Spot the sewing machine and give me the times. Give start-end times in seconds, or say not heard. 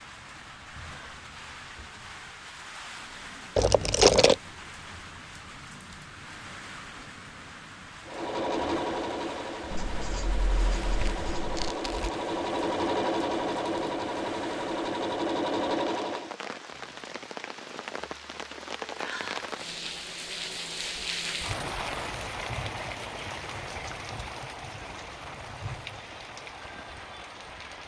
8.1-16.4.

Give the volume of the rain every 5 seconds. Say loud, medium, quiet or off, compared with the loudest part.
medium, medium, medium, loud, loud, medium.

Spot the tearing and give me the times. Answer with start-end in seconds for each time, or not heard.
3.5-4.3, 10.8-12.1, 21.3-22.4.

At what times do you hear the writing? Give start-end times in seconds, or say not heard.
9.7-11.7.